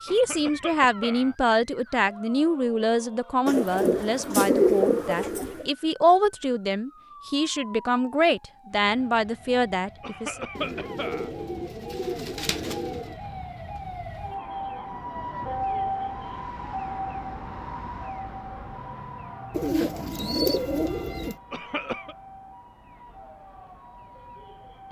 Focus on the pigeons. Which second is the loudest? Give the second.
5 s.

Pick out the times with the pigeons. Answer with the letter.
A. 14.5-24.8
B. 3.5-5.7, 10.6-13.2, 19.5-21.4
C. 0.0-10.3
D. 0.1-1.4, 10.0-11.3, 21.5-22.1
B.